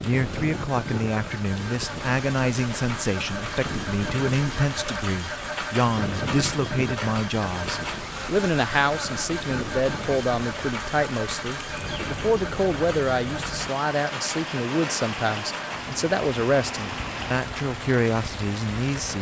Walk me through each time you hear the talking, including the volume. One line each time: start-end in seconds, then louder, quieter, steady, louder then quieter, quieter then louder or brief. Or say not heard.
0.1-19.1 steady.